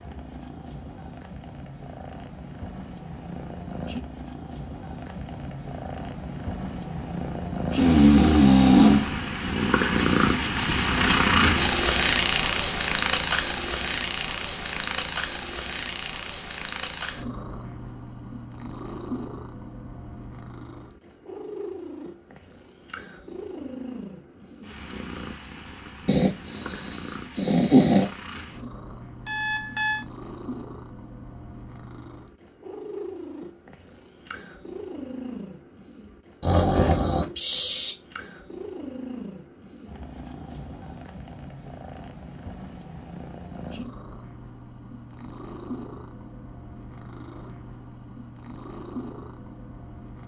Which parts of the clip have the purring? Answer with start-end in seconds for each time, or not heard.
0.0-50.2.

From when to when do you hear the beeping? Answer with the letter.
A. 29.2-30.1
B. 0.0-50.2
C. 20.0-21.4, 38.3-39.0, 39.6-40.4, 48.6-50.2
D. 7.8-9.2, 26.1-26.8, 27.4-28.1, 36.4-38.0
A.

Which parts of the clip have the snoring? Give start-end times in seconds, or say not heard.
7.8-9.2, 26.1-26.8, 27.4-28.1, 36.4-38.0.